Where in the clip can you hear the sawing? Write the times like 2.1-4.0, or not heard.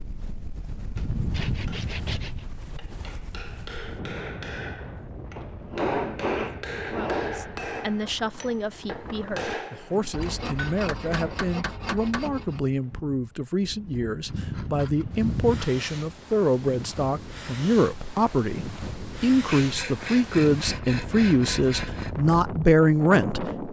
0.9-2.5, 5.3-7.4, 10.1-12.6, 14.2-15.8, 19.4-22.1.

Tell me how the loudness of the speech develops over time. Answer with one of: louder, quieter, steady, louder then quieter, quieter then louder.
louder.